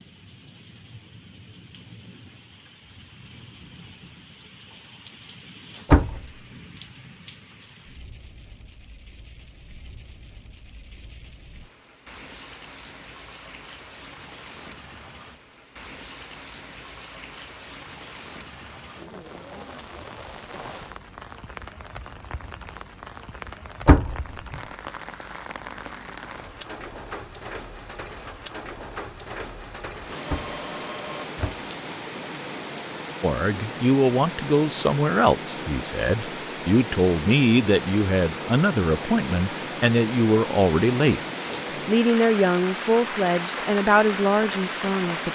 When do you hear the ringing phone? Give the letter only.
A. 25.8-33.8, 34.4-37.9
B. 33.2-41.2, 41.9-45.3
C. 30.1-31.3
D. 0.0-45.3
C.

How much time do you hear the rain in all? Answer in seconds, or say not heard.
45 s.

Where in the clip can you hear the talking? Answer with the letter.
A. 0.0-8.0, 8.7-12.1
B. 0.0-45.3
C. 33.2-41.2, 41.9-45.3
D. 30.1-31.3
C.